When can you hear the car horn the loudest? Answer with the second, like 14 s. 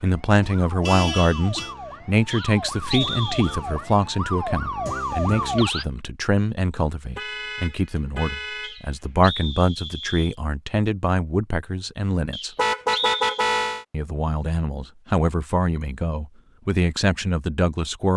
13 s.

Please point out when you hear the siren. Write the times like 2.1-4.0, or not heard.
0.0-5.8.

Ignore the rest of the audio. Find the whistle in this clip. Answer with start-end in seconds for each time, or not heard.
2.3-3.5, 8.6-10.3, 12.3-13.4.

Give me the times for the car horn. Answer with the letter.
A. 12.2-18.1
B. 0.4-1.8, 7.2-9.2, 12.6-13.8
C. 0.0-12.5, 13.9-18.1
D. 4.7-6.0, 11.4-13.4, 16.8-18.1
B.